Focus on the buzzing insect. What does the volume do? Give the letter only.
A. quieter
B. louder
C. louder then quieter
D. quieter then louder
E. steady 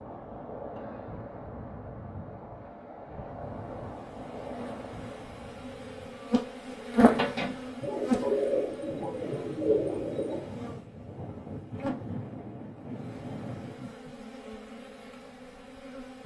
C.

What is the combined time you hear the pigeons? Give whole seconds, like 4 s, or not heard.
3 s.